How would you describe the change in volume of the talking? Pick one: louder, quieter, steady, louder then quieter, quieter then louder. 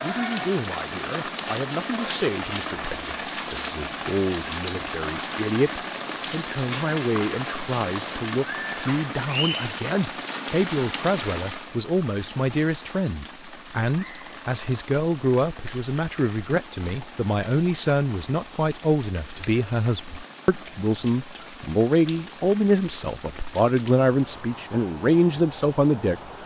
louder.